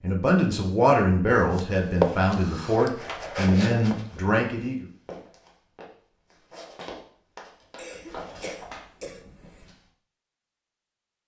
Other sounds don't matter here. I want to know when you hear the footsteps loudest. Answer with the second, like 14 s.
2 s.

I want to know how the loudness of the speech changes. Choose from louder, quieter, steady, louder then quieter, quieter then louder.
steady.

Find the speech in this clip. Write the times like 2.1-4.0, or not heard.
0.0-4.8.